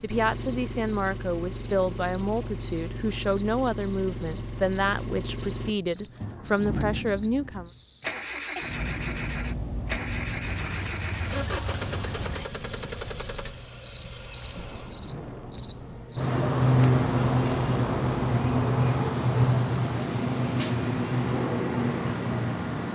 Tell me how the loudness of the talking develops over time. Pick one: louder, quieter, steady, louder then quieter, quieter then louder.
steady.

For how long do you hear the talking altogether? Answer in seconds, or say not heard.
8 s.